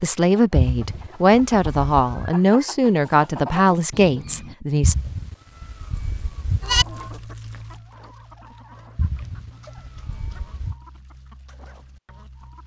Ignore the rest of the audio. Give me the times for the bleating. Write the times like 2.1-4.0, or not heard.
0.6-2.3, 4.8-6.8, 8.9-10.8.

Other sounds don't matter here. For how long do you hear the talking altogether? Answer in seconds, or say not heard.
5 s.